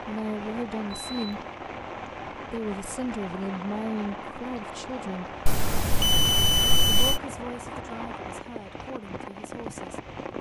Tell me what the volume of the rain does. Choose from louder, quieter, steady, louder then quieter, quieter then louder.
steady.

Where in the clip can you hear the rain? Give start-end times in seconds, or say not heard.
0.0-10.3.